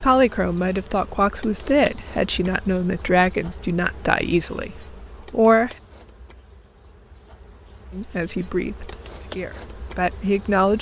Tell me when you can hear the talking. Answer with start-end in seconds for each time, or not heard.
0.0-5.7, 7.9-10.7.